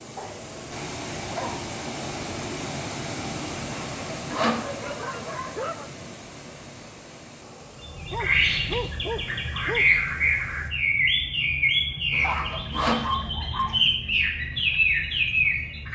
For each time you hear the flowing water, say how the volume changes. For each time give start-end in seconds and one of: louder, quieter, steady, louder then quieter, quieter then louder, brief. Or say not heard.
0.0-10.7 quieter.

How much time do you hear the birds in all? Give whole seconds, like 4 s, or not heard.
8 s.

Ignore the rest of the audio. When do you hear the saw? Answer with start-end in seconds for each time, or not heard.
3.9-4.7, 12.1-13.1.